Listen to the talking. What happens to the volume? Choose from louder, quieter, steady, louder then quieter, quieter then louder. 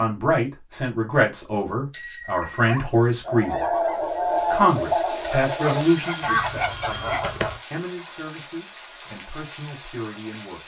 quieter.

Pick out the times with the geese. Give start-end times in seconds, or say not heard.
3.2-7.6.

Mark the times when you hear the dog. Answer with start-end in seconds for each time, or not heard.
2.4-3.7, 5.6-7.3.